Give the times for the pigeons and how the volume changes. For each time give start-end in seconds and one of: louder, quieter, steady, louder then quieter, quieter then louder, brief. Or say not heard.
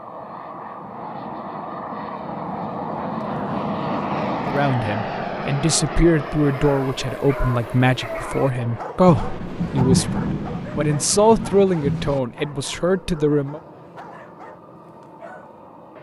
not heard.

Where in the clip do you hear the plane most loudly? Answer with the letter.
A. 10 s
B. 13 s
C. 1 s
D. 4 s
D.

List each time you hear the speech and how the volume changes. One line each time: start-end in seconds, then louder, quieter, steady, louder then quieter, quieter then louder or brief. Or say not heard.
4.5-13.6 steady.